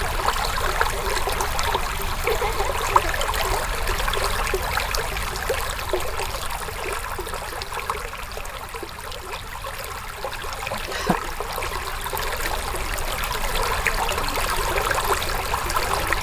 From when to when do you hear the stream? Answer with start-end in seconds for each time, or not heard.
0.0-16.1.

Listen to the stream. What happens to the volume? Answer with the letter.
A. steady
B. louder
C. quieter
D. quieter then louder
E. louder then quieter
D.